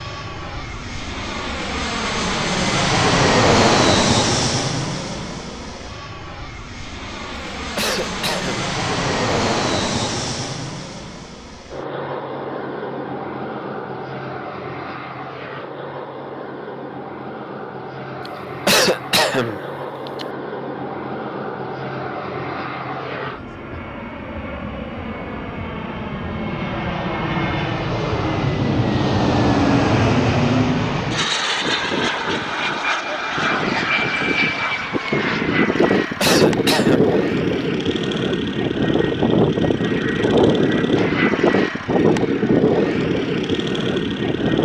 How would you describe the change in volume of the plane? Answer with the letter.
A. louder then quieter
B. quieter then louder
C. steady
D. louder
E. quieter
B.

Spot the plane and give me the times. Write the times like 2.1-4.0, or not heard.
0.0-44.6.